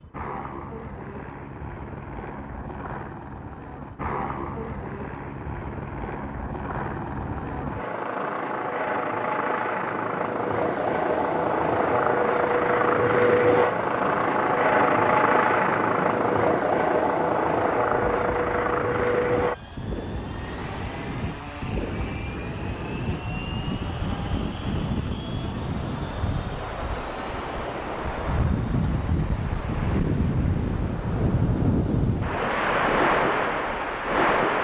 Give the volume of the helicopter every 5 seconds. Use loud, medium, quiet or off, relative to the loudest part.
quiet, medium, loud, loud, quiet, quiet, quiet.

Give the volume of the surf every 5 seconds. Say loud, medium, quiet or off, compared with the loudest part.
off, off, quiet, quiet, medium, medium, loud.